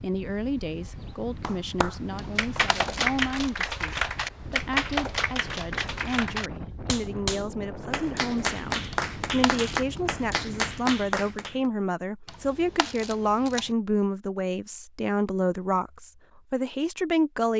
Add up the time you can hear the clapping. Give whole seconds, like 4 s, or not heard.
10 s.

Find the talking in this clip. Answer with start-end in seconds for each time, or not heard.
0.0-17.5.